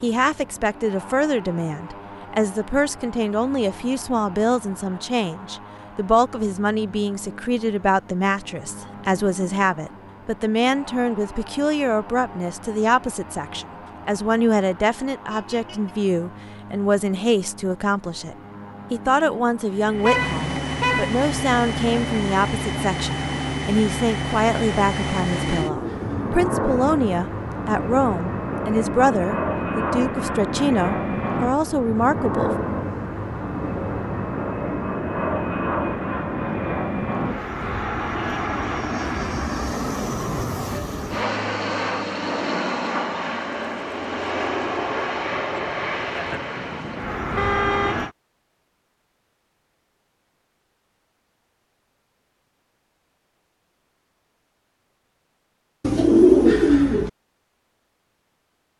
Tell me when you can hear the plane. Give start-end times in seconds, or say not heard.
0.0-48.1.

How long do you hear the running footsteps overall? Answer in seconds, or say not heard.
not heard.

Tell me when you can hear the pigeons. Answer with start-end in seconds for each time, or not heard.
25.3-26.4, 55.8-57.1.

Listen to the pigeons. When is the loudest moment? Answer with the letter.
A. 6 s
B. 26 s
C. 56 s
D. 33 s
C.